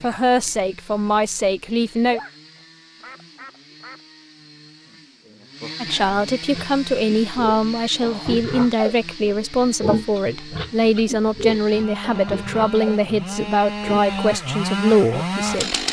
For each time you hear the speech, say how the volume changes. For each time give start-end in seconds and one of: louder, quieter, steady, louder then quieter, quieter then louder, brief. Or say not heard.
0.0-2.2 brief
5.8-15.8 steady.